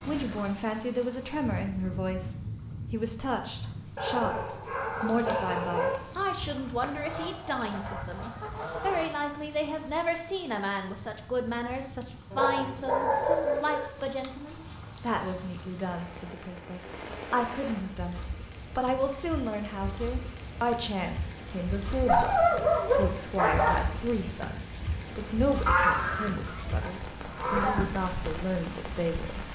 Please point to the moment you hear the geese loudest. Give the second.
26 s.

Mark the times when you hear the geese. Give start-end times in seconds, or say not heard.
6.3-9.1, 25.6-27.9.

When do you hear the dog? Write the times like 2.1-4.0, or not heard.
4.0-6.0, 12.3-13.9, 22.1-23.8.